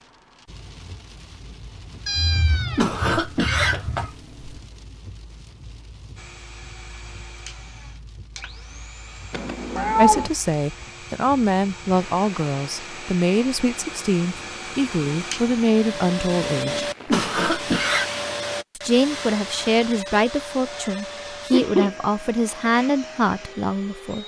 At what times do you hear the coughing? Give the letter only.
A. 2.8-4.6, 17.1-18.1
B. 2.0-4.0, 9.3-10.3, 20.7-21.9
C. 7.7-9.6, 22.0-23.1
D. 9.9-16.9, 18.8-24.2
A.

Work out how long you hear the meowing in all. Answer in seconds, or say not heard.
4 s.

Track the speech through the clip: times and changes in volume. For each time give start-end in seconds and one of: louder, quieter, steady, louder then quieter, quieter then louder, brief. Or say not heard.
9.9-16.9 steady
18.8-24.2 steady.